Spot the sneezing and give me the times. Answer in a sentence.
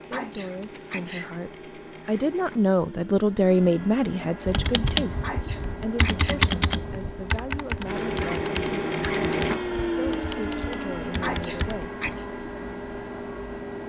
The sneezing can be heard from 0.1 to 1.3 s, from 5.2 to 6.4 s and from 11.2 to 12.2 s.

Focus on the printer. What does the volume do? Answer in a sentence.
The volume of the printer goes up, then down.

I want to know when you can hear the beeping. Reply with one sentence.
You can't hear the beeping here.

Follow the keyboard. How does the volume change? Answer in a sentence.
The loudness of the keyboard goes down.